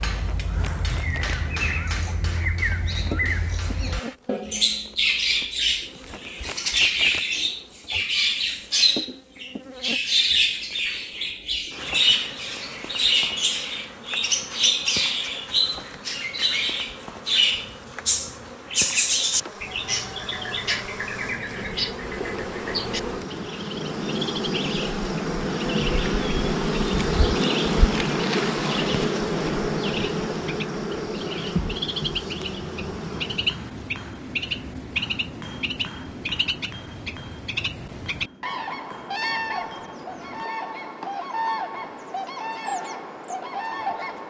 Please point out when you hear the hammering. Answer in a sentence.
You can hear the hammering from 0.0 to 4.2 s and from 33.3 to 40.5 s.